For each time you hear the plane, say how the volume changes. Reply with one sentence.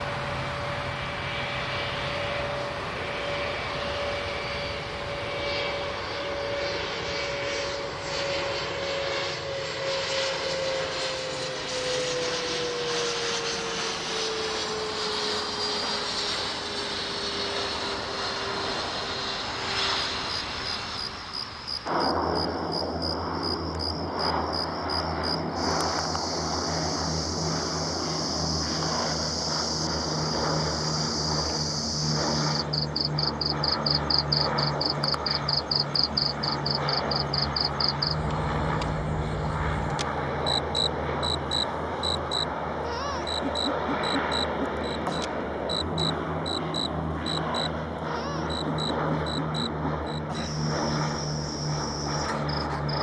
You can hear the plane from 0.0 to 52.9 s, at a steady volume.